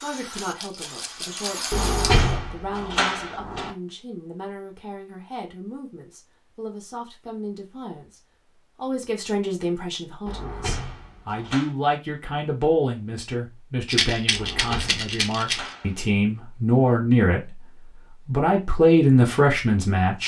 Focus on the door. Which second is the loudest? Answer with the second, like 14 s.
2 s.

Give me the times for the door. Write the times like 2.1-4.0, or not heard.
1.7-3.7, 10.2-11.7, 14.3-16.1.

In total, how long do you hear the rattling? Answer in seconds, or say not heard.
4 s.